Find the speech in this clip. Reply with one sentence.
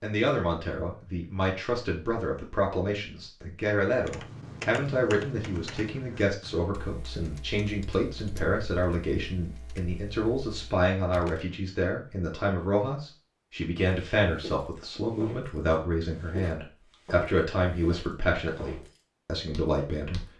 You can hear the speech from 0.0 to 20.3 s.